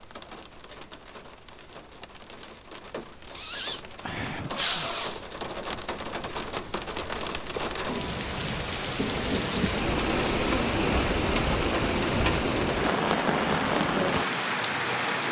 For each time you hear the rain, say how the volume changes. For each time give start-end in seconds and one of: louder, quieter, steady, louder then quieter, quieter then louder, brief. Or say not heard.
0.0-15.2 louder.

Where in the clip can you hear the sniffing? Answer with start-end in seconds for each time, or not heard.
3.3-5.2.